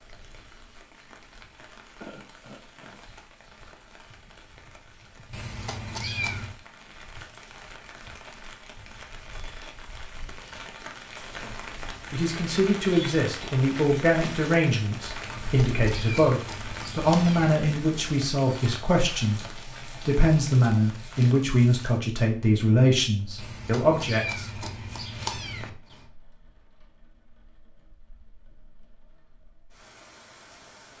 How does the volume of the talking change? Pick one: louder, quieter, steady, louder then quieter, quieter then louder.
steady.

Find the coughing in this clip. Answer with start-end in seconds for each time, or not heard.
2.0-3.0.